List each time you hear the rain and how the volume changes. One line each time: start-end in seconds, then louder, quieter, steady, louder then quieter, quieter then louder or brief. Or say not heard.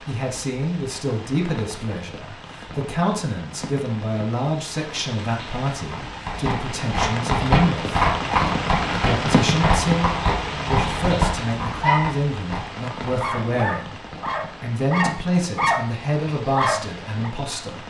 0.0-17.8 louder then quieter.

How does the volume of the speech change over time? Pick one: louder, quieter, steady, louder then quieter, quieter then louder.
steady.